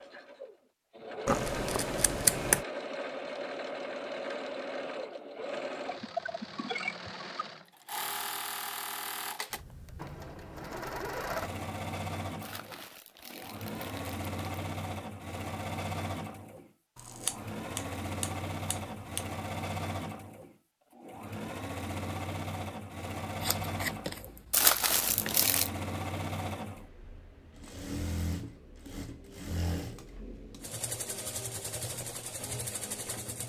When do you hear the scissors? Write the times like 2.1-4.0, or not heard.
1.2-2.6, 16.9-19.2, 23.4-25.4.